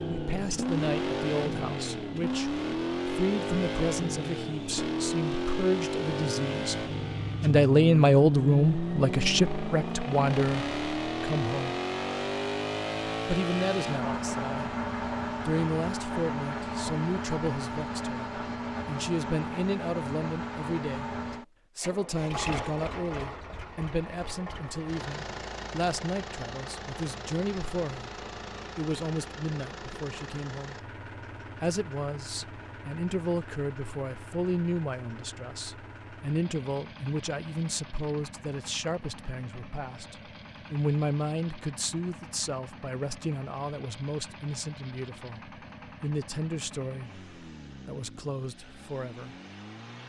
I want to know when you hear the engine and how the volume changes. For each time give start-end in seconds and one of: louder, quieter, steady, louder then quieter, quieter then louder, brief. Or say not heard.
0.0-50.0 quieter.